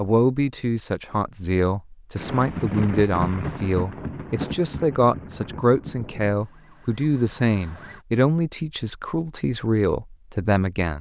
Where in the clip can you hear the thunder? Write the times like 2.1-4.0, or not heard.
2.1-6.3.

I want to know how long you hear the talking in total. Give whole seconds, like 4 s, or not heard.
11 s.